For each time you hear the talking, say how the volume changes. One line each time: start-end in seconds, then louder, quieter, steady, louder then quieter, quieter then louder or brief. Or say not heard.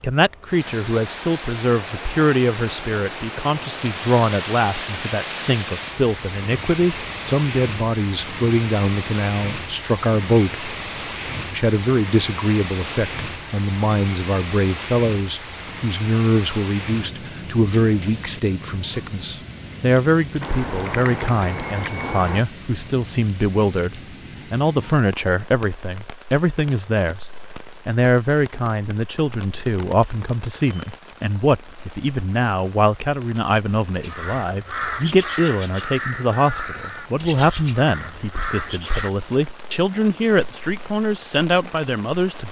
0.0-10.7 steady
11.5-27.2 steady
27.9-42.4 steady.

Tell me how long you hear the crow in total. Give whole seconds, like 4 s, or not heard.
5 s.